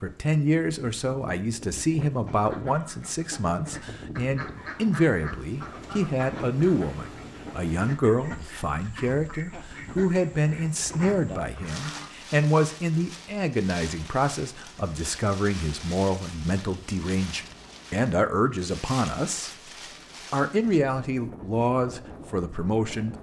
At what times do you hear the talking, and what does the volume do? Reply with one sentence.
The talking can be heard from 0.0 to 19.7 s, at a steady volume; and briefly from 20.3 to 23.1 s.